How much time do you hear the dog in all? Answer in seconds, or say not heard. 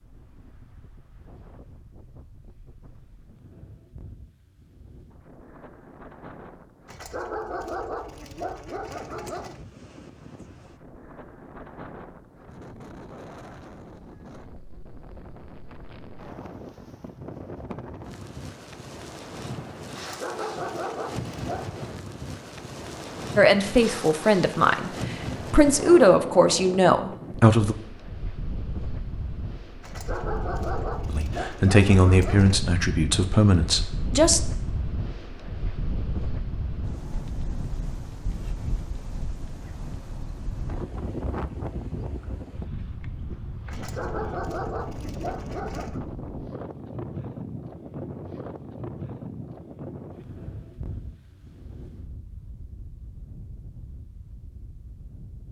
10 s.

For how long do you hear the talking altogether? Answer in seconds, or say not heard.
8 s.